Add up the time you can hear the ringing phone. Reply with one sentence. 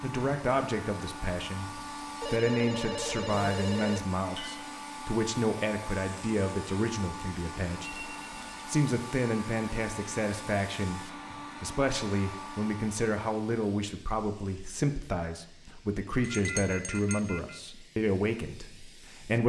You can hear the ringing phone for 4 seconds altogether.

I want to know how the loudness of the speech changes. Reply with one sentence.
The loudness of the speech stays about the same.